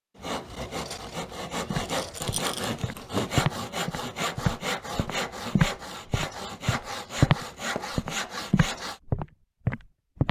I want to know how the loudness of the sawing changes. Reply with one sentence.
The volume of the sawing stays about the same.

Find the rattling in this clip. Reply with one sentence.
You can hear the rattling from 1.8 to 2.7 s.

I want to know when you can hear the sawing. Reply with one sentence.
You can hear the sawing from 0.1 to 9.0 s.